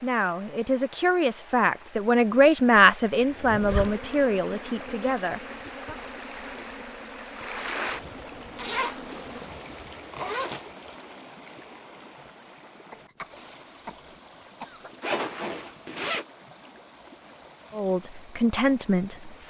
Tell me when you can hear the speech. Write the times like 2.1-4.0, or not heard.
0.0-6.0, 17.7-19.4.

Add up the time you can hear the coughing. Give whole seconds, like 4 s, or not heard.
2 s.